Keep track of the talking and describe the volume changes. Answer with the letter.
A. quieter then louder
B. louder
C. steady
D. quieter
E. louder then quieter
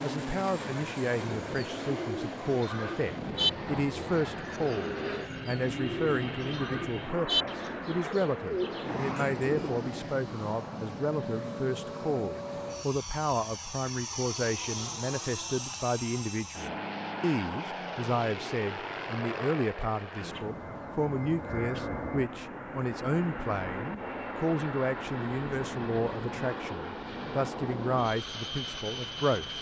C.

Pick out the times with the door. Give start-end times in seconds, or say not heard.
not heard.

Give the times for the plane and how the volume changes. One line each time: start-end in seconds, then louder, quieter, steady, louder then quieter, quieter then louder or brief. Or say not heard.
0.0-29.5 steady.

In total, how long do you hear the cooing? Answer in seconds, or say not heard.
8 s.